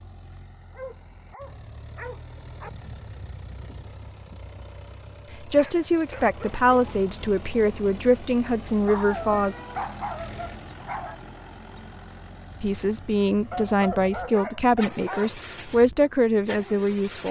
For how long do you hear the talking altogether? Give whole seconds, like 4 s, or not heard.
9 s.